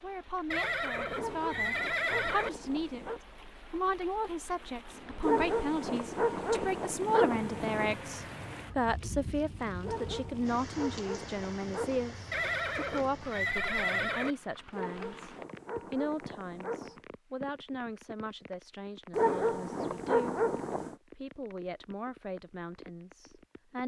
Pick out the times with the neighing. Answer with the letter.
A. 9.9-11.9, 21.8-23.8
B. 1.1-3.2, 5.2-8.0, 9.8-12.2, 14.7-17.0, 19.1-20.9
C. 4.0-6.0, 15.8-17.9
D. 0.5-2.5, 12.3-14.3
D.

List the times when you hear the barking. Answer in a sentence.
You can hear the barking from 1.1 to 3.2 s, from 5.2 to 8.0 s, from 9.8 to 12.2 s, from 14.7 to 17.0 s and from 19.1 to 20.9 s.